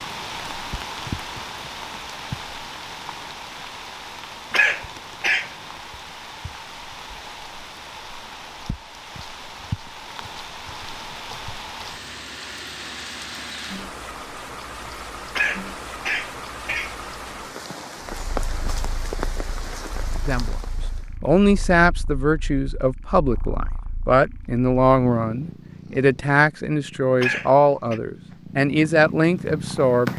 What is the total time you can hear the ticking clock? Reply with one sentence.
The ticking clock can't be heard in this clip.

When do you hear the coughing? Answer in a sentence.
You can hear the coughing from 4.5 to 5.5 s, from 15.3 to 16.9 s and from 27.2 to 28.0 s.